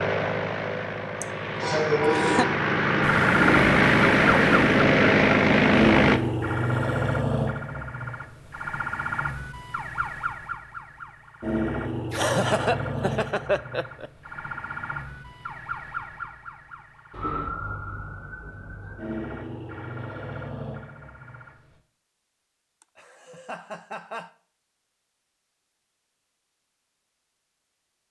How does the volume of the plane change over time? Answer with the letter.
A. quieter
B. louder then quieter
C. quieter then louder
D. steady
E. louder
E.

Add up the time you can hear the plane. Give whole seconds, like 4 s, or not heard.
6 s.